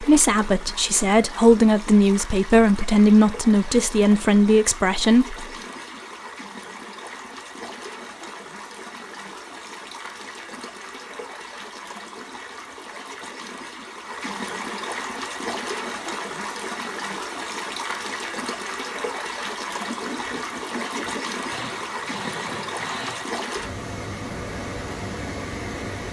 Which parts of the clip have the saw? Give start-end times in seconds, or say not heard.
19.8-23.3.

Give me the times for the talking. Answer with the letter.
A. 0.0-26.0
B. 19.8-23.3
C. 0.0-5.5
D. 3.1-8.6
C.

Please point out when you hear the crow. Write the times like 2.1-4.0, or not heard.
not heard.